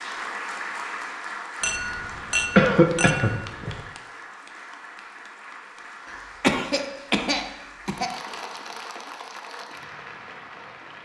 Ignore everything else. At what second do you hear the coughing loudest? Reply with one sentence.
The volume of the coughing peaks at 3 seconds.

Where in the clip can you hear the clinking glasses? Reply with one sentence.
You can hear the clinking glasses from 1.6 to 3.9 s.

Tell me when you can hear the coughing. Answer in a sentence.
The coughing can be heard from 2.5 to 3.8 s and from 6.0 to 8.1 s.